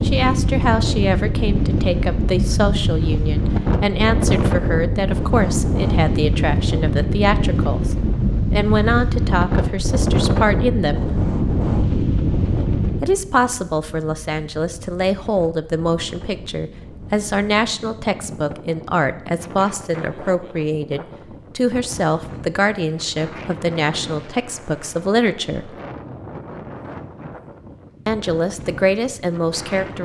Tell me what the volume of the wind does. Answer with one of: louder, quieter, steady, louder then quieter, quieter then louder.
quieter.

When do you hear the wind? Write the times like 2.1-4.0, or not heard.
0.0-30.0.